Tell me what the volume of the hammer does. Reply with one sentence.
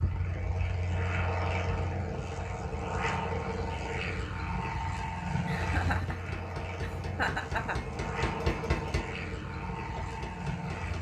The volume of the hammer goes up, then down.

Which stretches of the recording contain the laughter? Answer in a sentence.
You can hear the laughter from 5.5 to 8.0 s.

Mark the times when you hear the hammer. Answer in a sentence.
You can hear the hammer from 5.5 to 10.9 s.